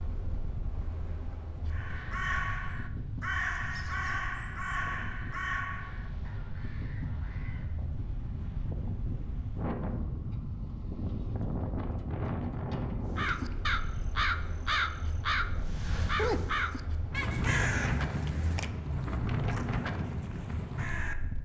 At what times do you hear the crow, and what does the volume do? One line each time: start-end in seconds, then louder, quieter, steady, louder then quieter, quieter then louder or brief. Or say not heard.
1.7-7.9 quieter
13.1-21.1 quieter.